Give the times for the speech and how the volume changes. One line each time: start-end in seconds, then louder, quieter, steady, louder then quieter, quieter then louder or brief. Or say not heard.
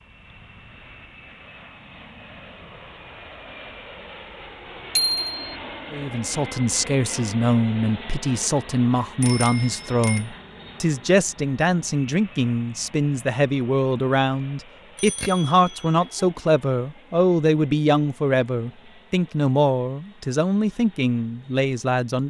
5.9-22.2 steady.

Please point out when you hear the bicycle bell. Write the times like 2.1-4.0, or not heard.
5.0-5.4, 9.2-10.2, 14.9-16.2.